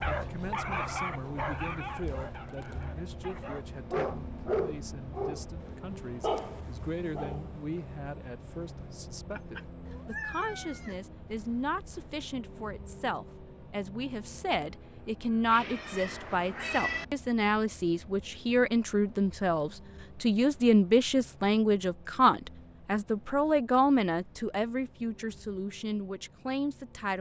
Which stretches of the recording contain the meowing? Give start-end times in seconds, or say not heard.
9.3-10.9, 15.5-17.1.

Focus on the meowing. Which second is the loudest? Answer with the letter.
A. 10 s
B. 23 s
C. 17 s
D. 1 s
C.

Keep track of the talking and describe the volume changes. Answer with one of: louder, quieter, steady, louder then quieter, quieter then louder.
louder.